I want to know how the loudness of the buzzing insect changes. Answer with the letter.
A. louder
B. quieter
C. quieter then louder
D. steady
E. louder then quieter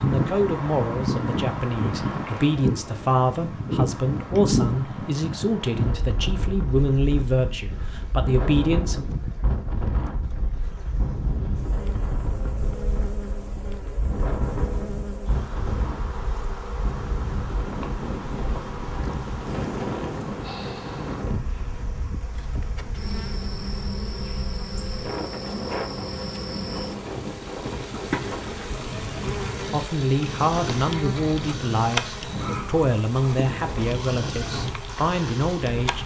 A.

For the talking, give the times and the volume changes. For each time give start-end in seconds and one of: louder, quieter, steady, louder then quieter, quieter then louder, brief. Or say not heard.
0.0-9.1 steady
29.2-36.0 steady.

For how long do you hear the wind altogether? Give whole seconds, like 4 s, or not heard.
36 s.